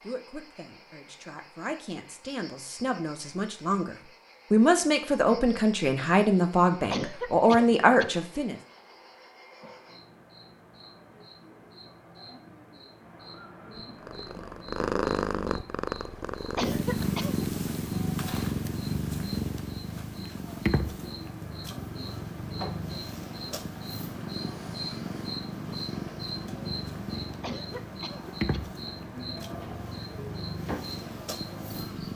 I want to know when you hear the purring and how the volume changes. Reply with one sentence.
You can hear the purring from 13.8 to 32.1 s, getting quieter.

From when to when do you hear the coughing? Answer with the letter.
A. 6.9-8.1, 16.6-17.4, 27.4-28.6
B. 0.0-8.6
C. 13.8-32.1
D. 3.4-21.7
A.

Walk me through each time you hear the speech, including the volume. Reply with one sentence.
You can hear the speech from 0.0 to 8.6 s, getting louder.